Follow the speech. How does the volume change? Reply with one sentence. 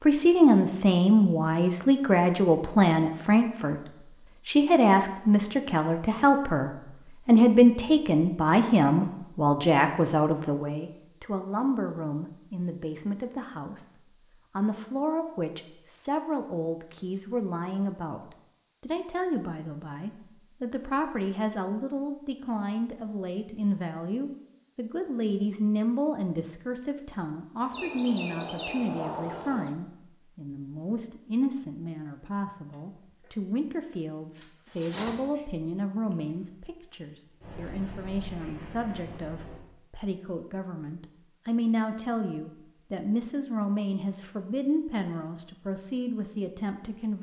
The loudness of the speech goes down.